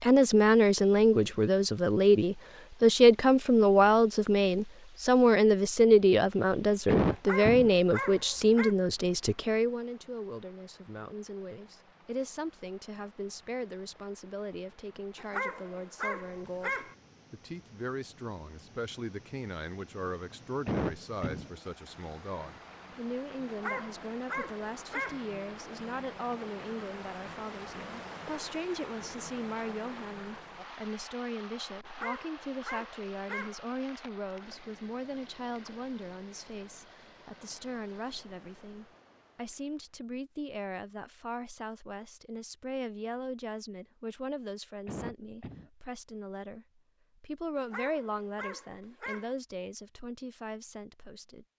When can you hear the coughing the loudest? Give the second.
7 s.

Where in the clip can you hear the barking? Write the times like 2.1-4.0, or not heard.
7.1-8.8, 15.2-16.9, 23.4-25.2, 31.8-33.6, 47.5-49.4.